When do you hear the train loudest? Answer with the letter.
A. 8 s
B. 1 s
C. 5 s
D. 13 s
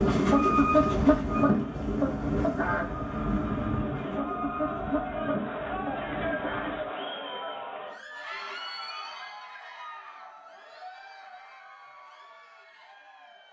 B.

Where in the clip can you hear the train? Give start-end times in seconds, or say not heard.
0.0-6.9.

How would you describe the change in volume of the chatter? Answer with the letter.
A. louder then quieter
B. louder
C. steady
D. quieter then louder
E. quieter
A.